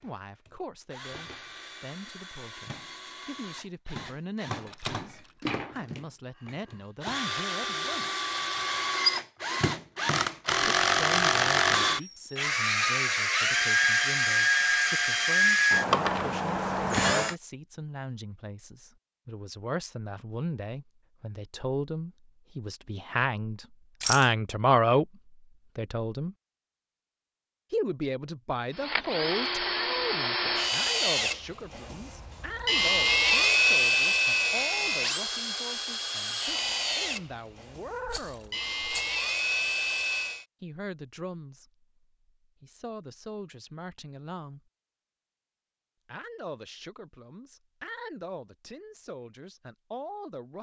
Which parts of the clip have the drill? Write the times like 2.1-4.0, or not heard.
0.0-17.4, 28.7-40.5.